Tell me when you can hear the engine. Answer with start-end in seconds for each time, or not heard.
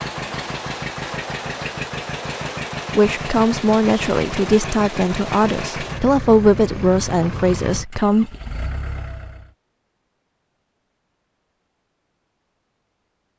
0.0-9.5.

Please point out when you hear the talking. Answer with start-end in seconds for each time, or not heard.
3.0-8.3.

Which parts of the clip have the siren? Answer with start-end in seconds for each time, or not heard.
not heard.